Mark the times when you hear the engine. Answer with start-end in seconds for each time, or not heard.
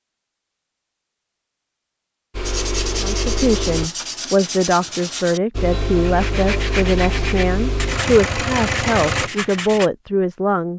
2.3-3.9, 5.5-9.3.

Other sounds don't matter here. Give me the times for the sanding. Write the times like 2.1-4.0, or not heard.
2.5-9.9.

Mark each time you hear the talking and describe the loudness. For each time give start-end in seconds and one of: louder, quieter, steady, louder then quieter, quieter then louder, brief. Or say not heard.
3.0-10.7 steady.